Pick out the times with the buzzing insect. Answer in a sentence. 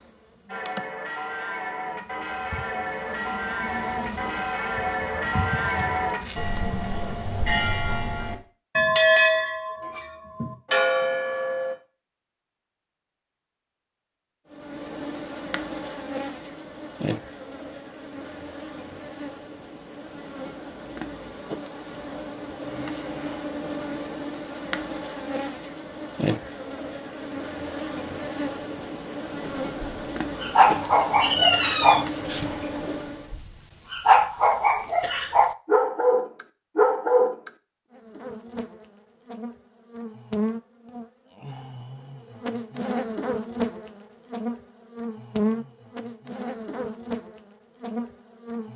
You can hear the buzzing insect from 0.0 to 7.1 s, from 14.5 to 33.4 s and from 37.9 to 48.7 s.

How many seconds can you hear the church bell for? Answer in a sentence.
The church bell can be heard for 11 seconds in total.